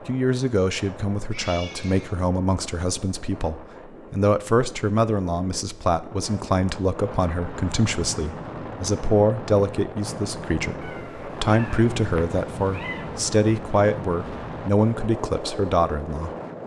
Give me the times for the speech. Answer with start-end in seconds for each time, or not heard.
0.1-16.3.